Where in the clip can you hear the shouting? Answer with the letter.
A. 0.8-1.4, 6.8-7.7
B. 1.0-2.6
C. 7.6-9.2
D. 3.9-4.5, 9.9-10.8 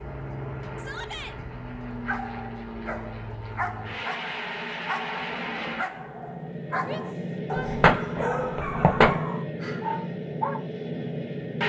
A.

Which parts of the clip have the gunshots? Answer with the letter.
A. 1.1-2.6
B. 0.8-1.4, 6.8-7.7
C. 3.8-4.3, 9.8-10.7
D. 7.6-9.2
D.